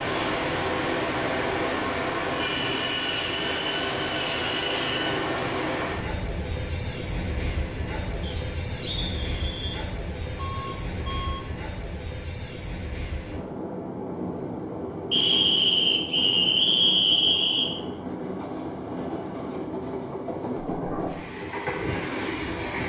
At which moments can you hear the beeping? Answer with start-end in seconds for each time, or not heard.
10.3-11.6.